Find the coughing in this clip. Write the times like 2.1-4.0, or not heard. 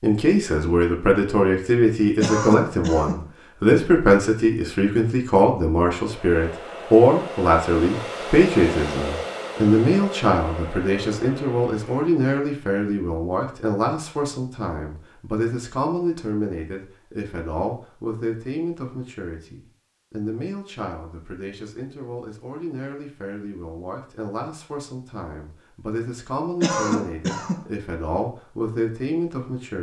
2.2-3.3, 26.6-27.7.